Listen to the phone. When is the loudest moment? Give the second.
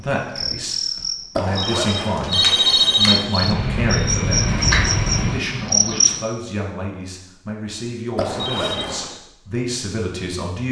3 s.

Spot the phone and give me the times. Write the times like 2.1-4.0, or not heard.
1.4-3.2, 8.2-9.2.